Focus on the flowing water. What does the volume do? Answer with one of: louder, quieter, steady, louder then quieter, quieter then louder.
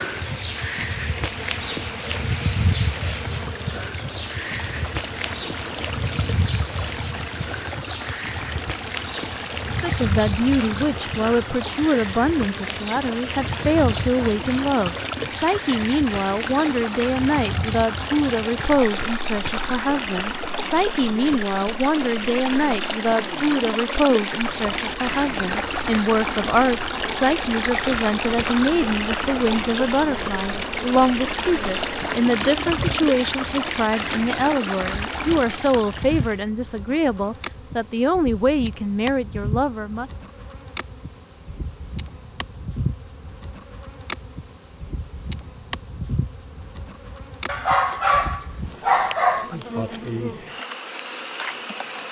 louder.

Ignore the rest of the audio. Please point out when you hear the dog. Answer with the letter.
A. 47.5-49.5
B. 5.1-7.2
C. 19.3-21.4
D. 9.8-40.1
A.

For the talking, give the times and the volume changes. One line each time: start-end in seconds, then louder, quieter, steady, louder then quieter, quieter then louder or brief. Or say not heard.
9.8-40.1 steady.